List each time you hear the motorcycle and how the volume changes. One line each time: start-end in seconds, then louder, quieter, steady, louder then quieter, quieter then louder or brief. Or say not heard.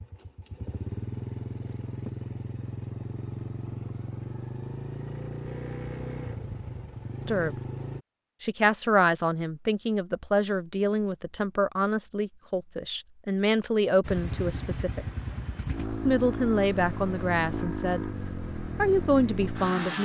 0.0-8.1 steady
14.0-20.0 steady.